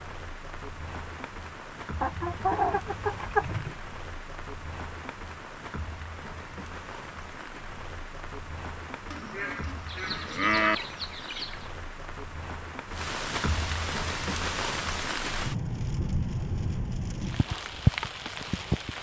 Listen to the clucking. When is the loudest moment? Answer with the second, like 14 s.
3 s.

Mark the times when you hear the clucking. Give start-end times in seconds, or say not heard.
2.0-3.8, 9.8-11.7.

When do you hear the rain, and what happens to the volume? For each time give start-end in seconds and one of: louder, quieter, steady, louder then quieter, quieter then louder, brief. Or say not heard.
0.0-18.9 louder.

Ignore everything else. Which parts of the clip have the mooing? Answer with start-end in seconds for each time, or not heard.
9.1-10.8.